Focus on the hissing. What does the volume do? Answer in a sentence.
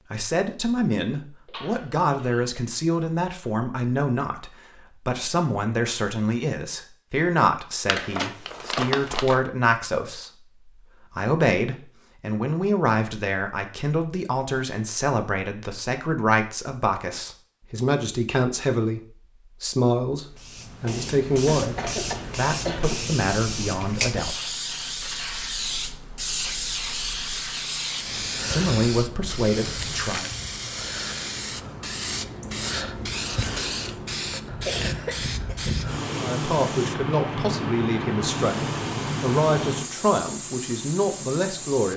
The volume of the hissing stays about the same.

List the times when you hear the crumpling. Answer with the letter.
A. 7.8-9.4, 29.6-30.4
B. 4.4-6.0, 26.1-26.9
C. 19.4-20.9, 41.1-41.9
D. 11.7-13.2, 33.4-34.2
A.